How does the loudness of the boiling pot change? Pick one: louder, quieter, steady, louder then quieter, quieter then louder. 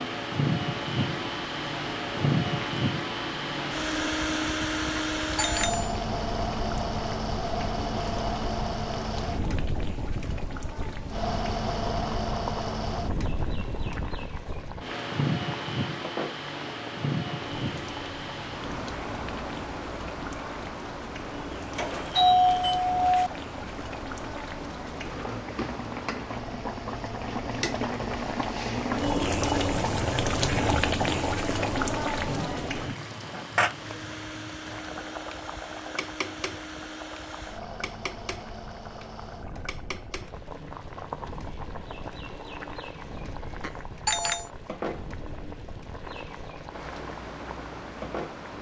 louder then quieter.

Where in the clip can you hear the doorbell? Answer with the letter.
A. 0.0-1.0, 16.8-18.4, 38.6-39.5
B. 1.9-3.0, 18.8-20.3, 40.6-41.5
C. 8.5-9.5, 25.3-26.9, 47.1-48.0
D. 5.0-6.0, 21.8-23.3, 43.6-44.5
D.